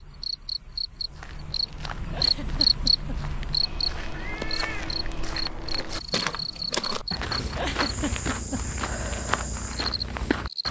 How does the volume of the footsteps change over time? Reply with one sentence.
The volume of the footsteps goes up.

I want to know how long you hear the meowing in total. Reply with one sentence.
The meowing can be heard for 2 seconds in total.